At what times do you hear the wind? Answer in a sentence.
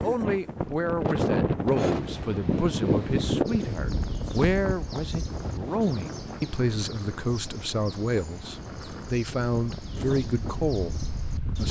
The wind can be heard from 0.0 to 11.6 s.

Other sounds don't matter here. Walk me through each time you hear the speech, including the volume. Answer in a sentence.
You can hear the speech from 0.0 to 11.6 s, at a steady volume.